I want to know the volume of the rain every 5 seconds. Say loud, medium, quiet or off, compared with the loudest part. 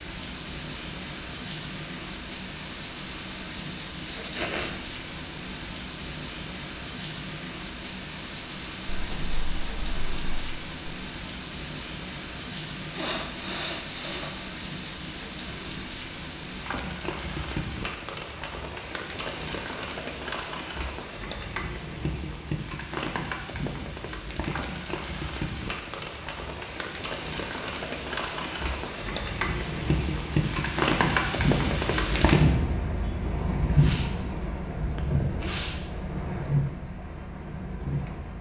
medium, medium, medium, medium, medium, medium, loud, medium.